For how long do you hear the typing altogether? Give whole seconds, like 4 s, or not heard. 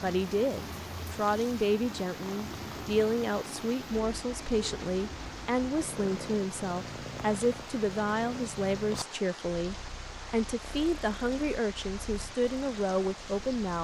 not heard.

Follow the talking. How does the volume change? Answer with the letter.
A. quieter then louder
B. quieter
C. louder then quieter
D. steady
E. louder
D.